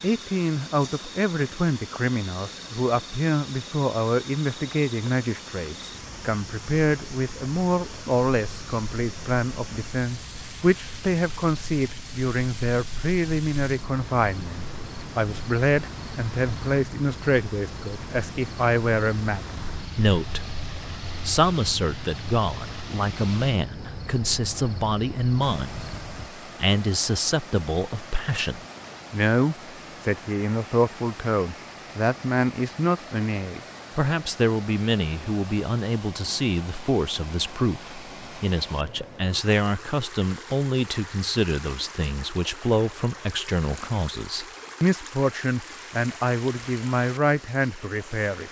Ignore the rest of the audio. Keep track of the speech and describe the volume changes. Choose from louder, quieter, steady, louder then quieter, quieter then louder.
steady.